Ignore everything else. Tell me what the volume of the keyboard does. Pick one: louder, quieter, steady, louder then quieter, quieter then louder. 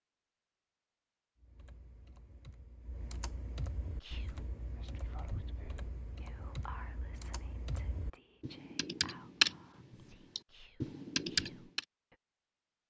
louder.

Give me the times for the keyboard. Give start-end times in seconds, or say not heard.
1.4-11.8.